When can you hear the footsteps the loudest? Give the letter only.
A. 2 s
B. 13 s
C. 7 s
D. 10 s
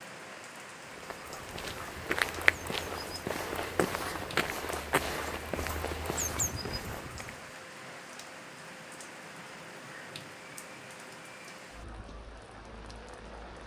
A.